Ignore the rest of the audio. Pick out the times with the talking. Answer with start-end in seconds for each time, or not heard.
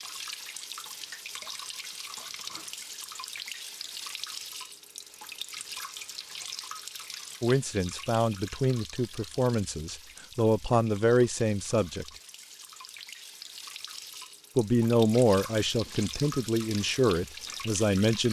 7.4-12.1, 14.6-18.2.